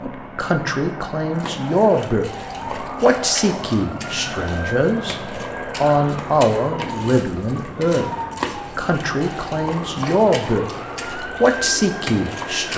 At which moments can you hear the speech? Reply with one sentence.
The speech can be heard from 0.0 to 2.3 s, from 3.0 to 5.2 s, from 5.8 to 8.1 s, from 8.8 to 10.7 s and from 11.4 to 12.7 s.